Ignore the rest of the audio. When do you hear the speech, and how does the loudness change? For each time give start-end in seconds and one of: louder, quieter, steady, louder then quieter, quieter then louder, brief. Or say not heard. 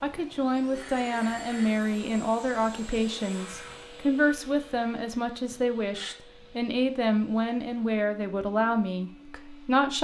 0.0-9.9 steady.